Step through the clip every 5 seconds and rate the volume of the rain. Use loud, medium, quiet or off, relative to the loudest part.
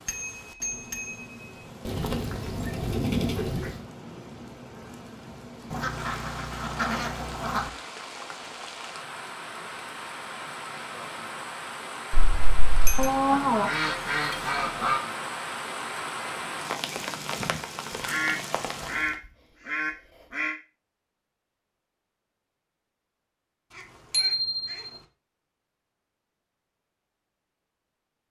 medium, medium, loud, loud, off, off.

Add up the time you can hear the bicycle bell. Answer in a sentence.
You can hear the bicycle bell for 3 seconds altogether.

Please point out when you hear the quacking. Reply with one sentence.
You can hear the quacking from 1.9 to 3.8 s, from 5.7 to 7.7 s, from 12.9 to 15.0 s, from 18.0 to 20.6 s and from 23.7 to 25.1 s.